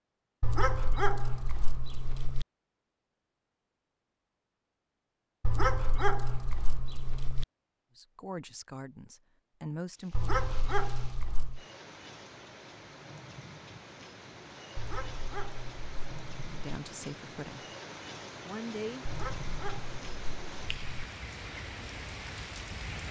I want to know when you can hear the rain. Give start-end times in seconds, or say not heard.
9.9-23.0.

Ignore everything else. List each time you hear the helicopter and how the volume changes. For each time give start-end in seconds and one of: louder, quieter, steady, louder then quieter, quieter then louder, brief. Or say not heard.
not heard.